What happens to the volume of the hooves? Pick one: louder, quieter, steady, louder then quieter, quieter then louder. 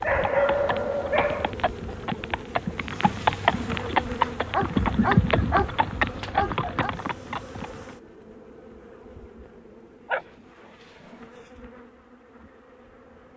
louder then quieter.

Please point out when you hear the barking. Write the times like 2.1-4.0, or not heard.
0.0-1.6, 4.5-6.9, 10.1-11.5.